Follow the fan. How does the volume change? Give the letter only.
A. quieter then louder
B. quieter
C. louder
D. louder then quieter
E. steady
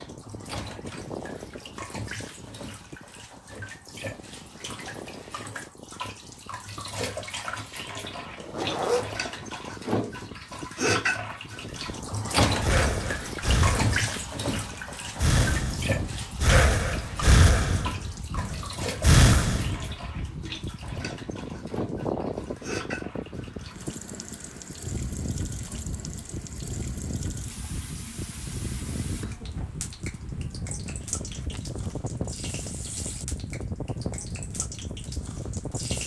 C.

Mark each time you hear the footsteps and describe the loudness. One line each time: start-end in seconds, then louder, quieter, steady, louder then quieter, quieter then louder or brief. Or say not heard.
not heard.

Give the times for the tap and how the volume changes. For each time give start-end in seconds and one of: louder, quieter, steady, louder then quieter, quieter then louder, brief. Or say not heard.
0.0-36.0 louder then quieter.